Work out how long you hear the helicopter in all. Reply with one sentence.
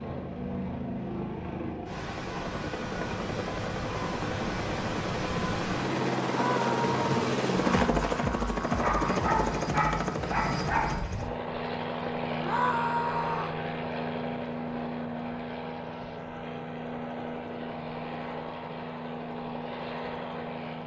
You can hear the helicopter for 21 seconds altogether.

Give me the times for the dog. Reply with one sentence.
The dog can be heard from 8.7 to 11.1 s.